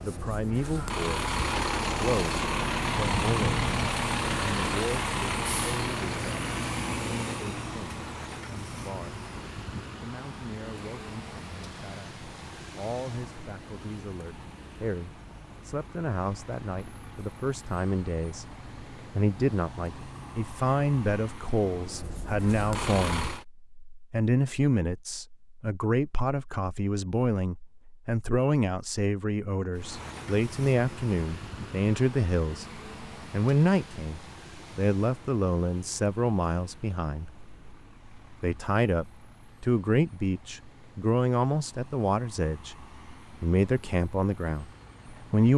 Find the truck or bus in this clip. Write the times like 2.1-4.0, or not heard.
0.0-23.4, 29.8-45.5.